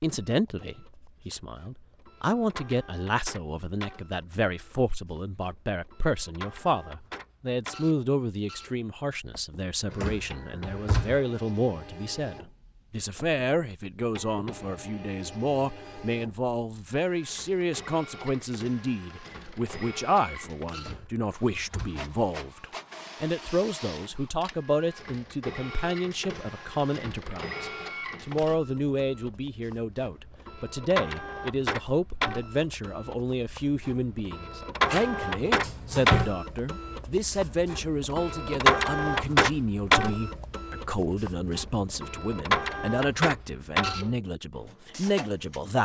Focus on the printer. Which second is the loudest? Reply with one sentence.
The volume of the printer peaks at 39 seconds.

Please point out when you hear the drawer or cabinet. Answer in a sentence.
The drawer or cabinet can be heard from 9.9 to 11.2 s, from 20.8 to 22.1 s and from 34.9 to 36.4 s.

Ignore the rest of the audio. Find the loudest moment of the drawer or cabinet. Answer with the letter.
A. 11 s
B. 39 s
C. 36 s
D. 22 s
C.